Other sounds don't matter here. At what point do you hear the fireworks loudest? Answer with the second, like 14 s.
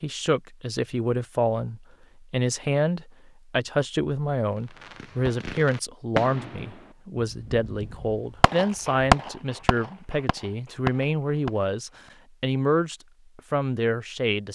9 s.